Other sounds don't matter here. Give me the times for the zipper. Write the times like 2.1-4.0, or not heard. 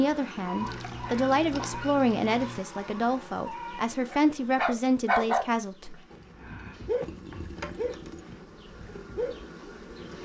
not heard.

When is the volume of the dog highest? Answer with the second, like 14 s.
5 s.